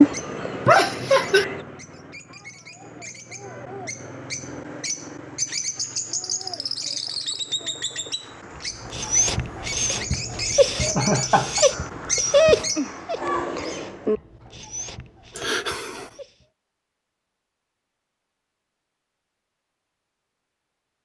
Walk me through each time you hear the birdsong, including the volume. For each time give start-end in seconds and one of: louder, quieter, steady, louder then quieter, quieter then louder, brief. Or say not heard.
0.0-14.2 louder.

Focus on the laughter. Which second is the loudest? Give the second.
1 s.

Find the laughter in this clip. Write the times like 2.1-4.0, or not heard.
0.7-1.4, 10.9-11.7, 15.3-16.1.